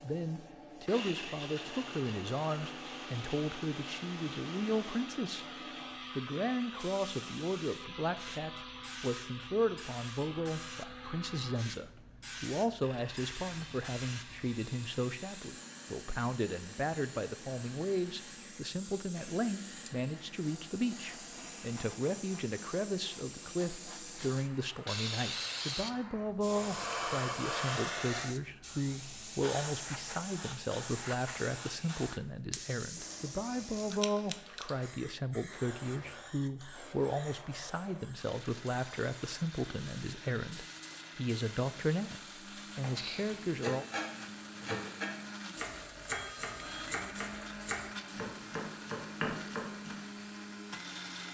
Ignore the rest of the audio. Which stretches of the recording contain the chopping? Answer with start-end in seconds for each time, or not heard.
42.8-50.0.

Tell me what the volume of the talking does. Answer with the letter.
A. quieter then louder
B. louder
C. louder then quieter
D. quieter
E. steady
E.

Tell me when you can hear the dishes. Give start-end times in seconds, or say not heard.
not heard.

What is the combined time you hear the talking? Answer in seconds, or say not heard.
43 s.